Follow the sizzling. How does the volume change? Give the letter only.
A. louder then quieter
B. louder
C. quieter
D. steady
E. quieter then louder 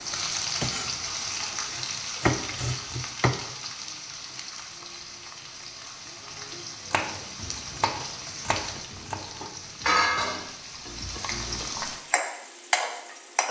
E.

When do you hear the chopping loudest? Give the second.
2 s.